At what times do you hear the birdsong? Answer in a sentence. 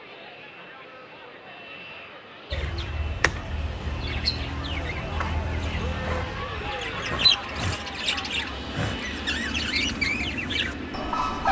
You can hear the birdsong from 2.5 to 11.4 s.